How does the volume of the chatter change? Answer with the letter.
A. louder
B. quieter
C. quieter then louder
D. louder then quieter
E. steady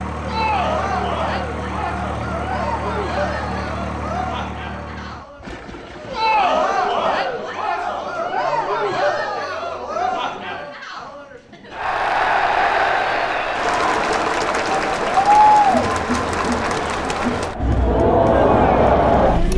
A.